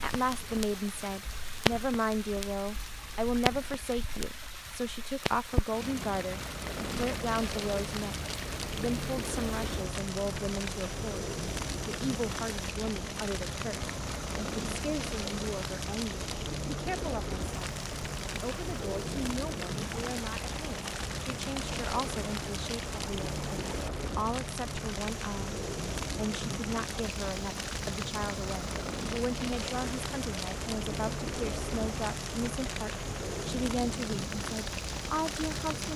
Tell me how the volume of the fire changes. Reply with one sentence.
The loudness of the fire stays about the same.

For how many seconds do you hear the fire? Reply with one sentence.
The fire can be heard for 36 seconds in total.